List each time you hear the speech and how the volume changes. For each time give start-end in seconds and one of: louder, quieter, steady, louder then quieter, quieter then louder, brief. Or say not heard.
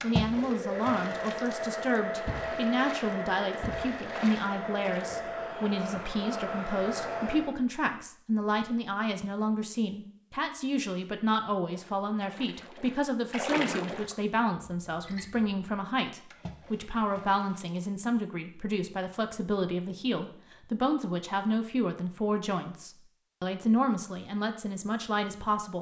0.0-25.7 steady.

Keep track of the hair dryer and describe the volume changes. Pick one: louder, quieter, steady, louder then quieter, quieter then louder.
steady.